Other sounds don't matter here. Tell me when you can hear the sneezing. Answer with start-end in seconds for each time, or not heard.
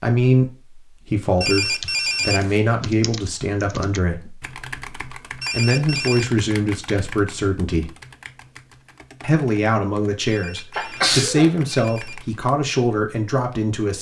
10.7-11.5.